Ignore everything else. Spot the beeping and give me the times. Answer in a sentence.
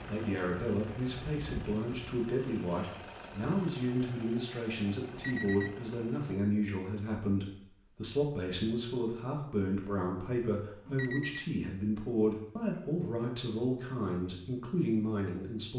The beeping can be heard from 5.1 to 5.9 s and from 10.8 to 11.5 s.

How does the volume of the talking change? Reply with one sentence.
The volume of the talking stays about the same.